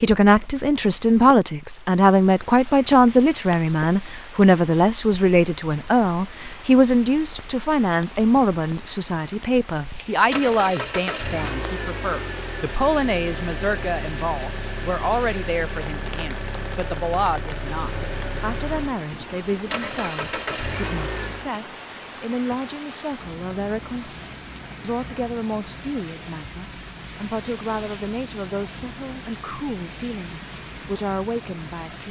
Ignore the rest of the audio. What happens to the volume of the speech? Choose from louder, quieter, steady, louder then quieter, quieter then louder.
quieter.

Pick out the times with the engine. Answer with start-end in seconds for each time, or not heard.
9.9-21.5.